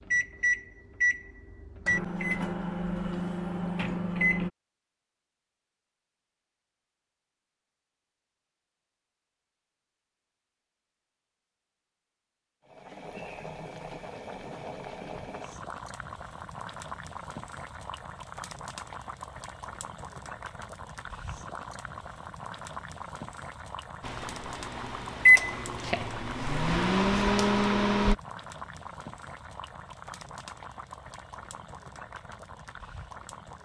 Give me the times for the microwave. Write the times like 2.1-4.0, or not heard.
0.1-4.5, 24.0-28.1.